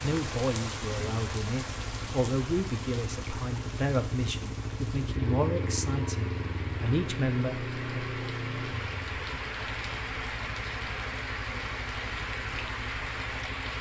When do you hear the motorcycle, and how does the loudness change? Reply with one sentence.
The motorcycle can be heard from 0.0 to 13.7 s, getting louder then quieter.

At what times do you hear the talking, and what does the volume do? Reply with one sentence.
The talking can be heard from 0.0 to 8.0 s, at a steady volume.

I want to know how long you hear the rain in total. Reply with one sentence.
The rain can be heard for 14 seconds in total.